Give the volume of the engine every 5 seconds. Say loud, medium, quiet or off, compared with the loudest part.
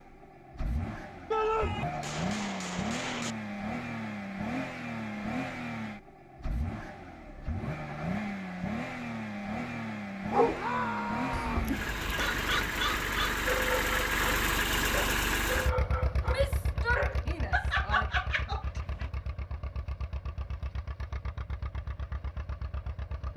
medium, medium, loud, medium, quiet.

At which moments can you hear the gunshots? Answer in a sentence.
You can hear the gunshots from 1.3 to 3.4 s.